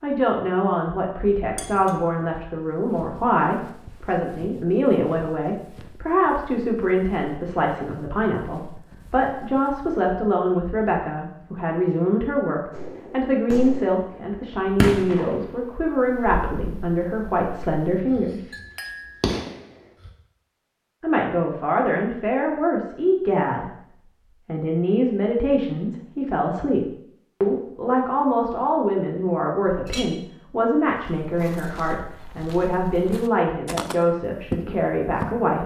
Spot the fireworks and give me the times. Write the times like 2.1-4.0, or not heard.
12.7-20.1.